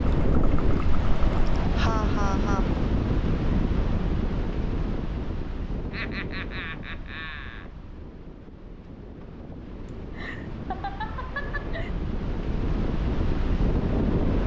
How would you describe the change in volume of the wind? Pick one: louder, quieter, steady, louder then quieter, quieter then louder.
quieter then louder.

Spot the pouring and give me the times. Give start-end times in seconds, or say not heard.
0.1-1.6.